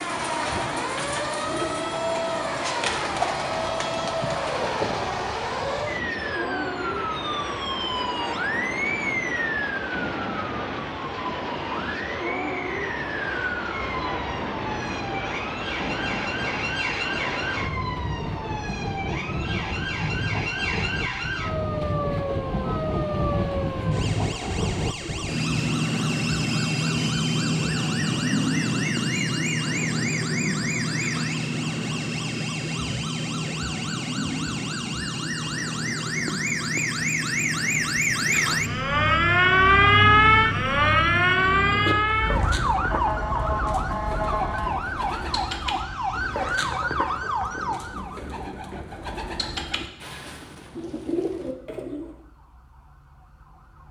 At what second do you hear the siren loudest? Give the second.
40 s.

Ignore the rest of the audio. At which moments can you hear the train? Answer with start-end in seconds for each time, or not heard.
0.0-42.0.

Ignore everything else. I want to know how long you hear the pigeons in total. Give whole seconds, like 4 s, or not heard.
15 s.